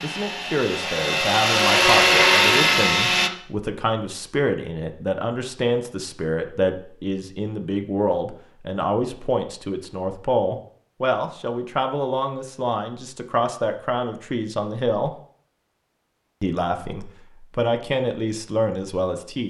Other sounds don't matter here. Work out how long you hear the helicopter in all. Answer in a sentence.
The helicopter can be heard for 3 seconds in total.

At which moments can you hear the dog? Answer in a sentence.
You can't hear the dog here.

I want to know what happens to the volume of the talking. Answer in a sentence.
The loudness of the talking stays about the same.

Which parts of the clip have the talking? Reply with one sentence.
You can hear the talking from 0.0 to 15.1 s and from 16.4 to 19.4 s.